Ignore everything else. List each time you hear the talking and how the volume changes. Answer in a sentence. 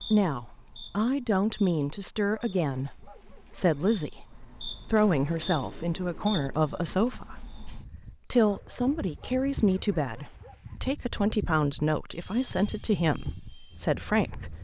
You can hear the talking from 0.1 to 14.5 s, at a steady volume.